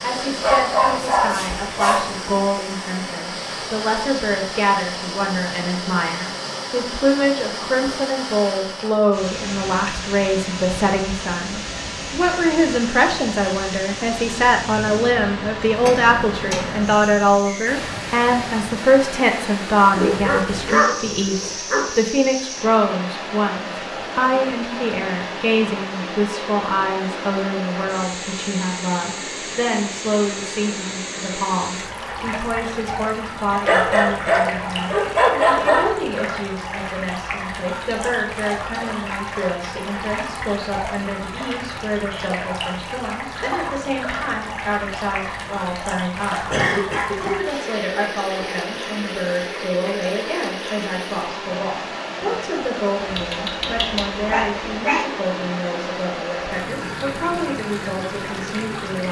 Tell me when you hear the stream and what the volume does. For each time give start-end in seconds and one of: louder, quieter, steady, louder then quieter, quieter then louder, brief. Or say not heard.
0.0-59.0 steady.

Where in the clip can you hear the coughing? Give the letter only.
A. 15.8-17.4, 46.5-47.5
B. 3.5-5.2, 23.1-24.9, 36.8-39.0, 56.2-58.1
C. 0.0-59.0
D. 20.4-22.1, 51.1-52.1
A.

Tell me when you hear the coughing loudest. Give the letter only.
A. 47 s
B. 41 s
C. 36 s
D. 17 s
A.